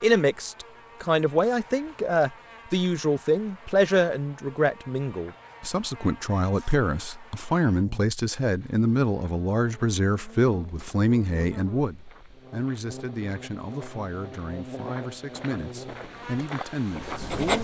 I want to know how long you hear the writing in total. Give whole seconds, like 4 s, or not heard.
2 s.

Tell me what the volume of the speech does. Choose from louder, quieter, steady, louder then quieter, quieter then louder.
quieter.